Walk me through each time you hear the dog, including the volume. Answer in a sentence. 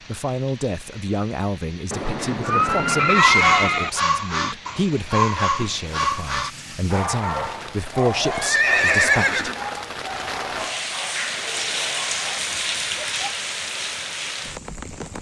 You can hear the dog from 3.1 to 13.4 s, getting quieter.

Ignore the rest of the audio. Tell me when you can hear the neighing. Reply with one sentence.
You can hear the neighing from 1.9 to 3.9 s and from 8.2 to 9.7 s.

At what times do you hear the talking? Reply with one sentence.
The talking can be heard from 0.1 to 9.4 s.